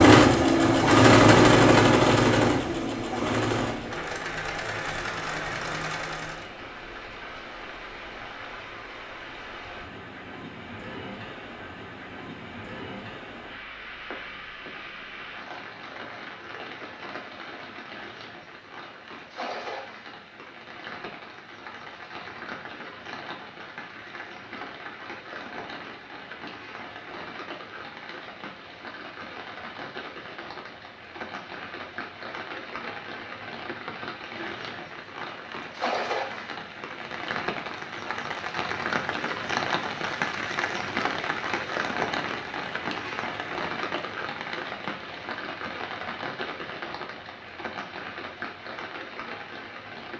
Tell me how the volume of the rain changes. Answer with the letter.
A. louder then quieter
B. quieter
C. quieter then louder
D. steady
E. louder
E.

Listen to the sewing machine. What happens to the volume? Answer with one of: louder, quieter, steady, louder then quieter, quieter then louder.
quieter.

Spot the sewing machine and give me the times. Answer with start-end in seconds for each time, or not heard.
0.0-6.5.